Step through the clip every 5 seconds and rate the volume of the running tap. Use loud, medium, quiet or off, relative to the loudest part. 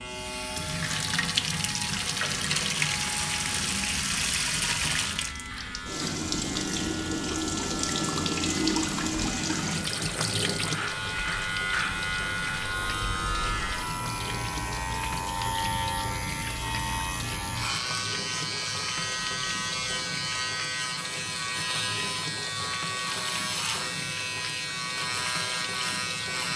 loud, loud, medium, medium, medium, medium.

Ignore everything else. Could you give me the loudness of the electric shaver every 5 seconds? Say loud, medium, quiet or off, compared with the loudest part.
medium, medium, loud, loud, loud, loud.